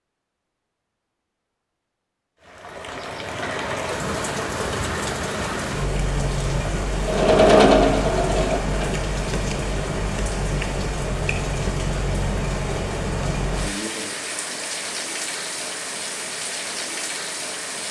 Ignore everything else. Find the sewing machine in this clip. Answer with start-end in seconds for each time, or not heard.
7.0-8.9.